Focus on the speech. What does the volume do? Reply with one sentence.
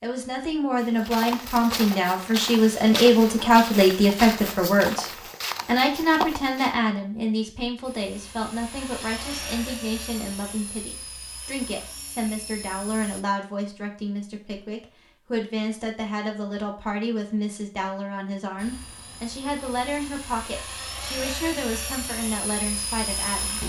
The volume of the speech goes down.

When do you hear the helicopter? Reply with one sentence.
You can hear the helicopter from 7.8 to 13.2 s and from 18.6 to 23.6 s.